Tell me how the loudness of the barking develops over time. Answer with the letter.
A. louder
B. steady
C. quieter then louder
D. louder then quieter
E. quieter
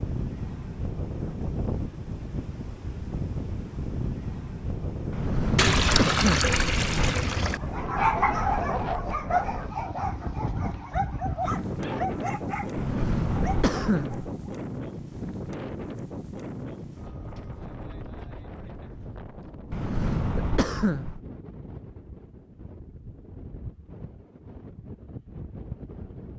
E.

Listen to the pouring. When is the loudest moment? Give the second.
6 s.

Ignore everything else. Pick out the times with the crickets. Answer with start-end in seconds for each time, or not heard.
not heard.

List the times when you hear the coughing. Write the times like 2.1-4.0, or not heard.
5.1-7.2, 12.8-14.2, 19.7-21.2.